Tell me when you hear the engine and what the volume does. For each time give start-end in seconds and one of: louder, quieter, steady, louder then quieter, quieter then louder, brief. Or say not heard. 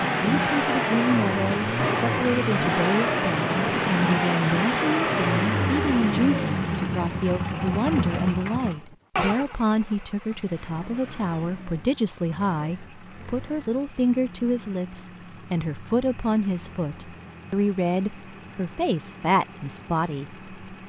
0.0-20.8 quieter.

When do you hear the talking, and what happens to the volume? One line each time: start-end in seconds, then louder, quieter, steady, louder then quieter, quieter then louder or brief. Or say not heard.
0.0-20.8 steady.